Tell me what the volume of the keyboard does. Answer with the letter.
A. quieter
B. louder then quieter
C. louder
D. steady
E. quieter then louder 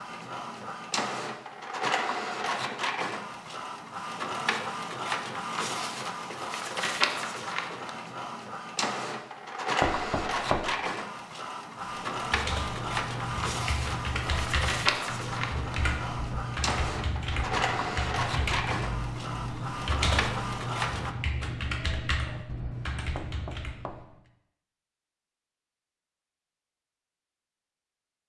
D.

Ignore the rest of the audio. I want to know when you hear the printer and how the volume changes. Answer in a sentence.
You can hear the printer from 0.0 to 21.1 s, at a steady volume.